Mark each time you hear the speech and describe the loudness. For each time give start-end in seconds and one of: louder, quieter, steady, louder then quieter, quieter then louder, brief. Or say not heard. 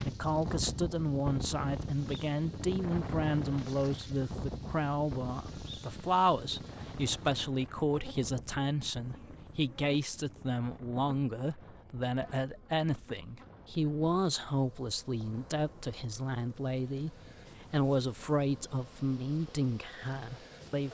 0.0-20.8 steady.